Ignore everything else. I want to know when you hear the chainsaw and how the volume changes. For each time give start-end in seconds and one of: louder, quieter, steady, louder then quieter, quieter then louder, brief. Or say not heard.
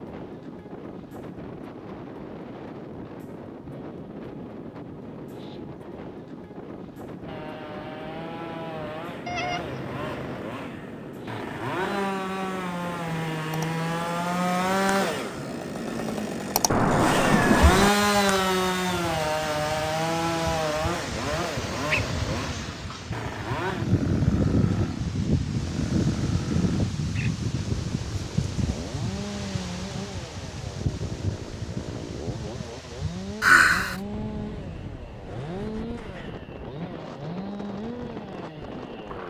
7.2-39.2 louder then quieter.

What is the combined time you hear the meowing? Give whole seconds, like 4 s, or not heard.
3 s.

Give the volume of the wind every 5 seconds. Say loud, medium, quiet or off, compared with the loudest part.
medium, medium, medium, medium, loud, loud, medium, medium.